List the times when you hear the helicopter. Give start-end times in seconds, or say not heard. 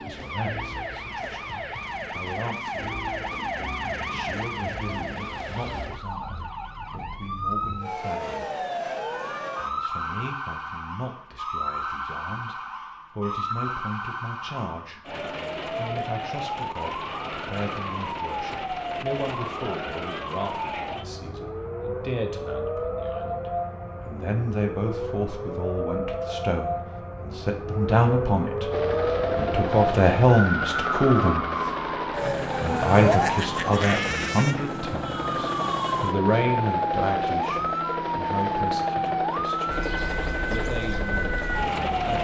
28.7-42.2.